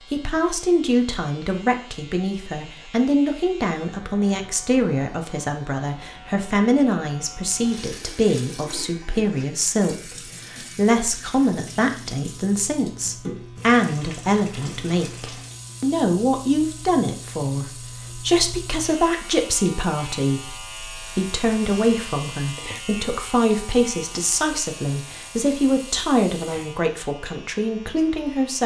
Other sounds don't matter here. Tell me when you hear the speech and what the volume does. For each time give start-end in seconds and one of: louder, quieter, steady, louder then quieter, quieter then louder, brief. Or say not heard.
0.1-28.6 steady.